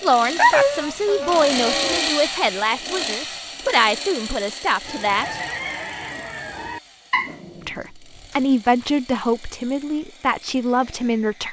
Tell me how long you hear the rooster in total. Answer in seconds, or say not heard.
2 s.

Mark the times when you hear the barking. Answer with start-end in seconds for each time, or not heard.
0.3-2.0, 7.1-8.3.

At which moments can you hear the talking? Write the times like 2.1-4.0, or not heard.
0.0-5.4, 7.7-11.4.